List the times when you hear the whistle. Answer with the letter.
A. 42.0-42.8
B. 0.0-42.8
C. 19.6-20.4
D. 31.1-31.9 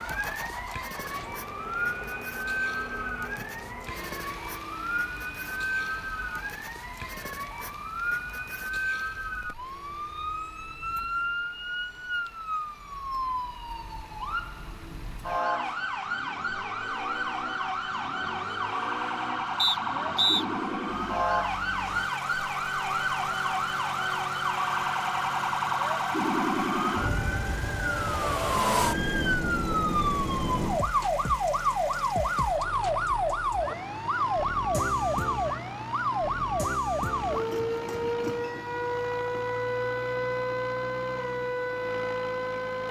C.